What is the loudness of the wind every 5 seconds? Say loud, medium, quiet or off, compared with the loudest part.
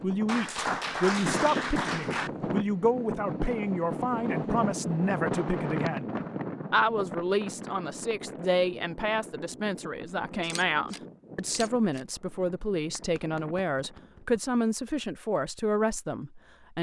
loud, loud, quiet, off.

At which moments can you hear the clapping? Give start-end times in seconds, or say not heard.
0.2-2.3, 12.9-14.4.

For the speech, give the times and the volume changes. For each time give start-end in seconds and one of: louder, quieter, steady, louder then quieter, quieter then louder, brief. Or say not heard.
0.0-16.7 steady.